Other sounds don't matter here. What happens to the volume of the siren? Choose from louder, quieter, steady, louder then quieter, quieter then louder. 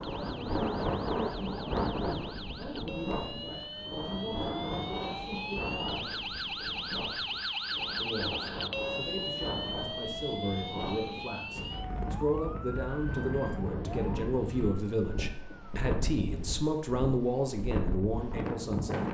louder then quieter.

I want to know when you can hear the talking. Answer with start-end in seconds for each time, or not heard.
0.2-6.2, 8.0-19.0.